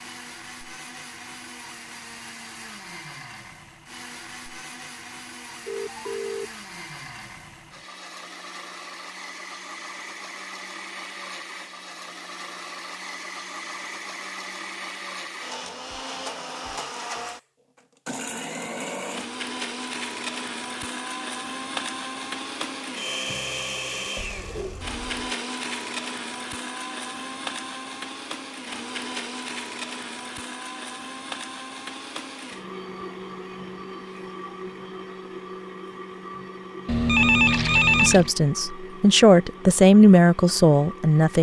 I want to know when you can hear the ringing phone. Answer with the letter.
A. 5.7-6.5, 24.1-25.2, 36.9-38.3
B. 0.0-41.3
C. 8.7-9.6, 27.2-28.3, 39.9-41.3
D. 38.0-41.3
A.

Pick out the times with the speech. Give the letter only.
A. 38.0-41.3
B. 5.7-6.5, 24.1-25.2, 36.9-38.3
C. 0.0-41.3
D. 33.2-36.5
A.